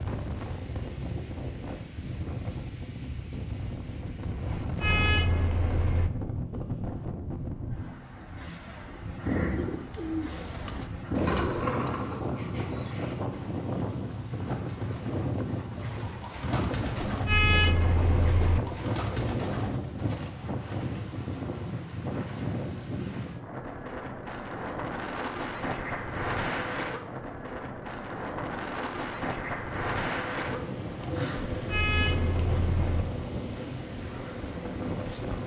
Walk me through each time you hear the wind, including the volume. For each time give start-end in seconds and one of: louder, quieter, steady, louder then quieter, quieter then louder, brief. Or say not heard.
0.0-35.4 steady.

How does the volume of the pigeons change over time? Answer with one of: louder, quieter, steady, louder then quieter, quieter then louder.
quieter then louder.